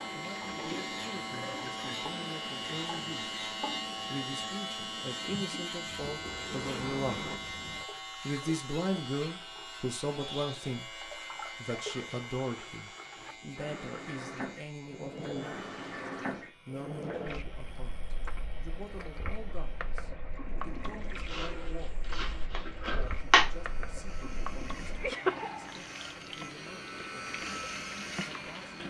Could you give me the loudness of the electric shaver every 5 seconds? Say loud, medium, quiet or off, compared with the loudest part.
loud, loud, medium, quiet, quiet, medium.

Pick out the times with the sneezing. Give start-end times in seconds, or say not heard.
23.3-23.8.